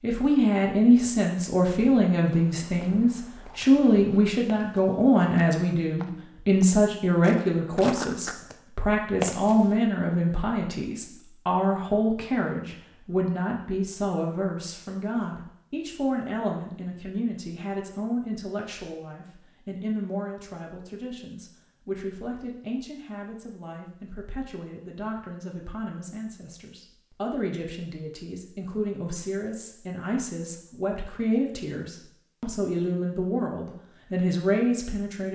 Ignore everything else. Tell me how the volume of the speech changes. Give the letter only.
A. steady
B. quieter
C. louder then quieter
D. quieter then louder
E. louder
D.